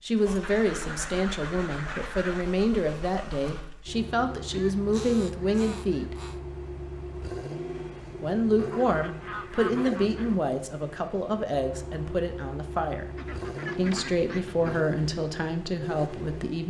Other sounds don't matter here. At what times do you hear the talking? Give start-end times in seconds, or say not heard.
0.0-6.2, 8.2-13.1, 13.8-16.6.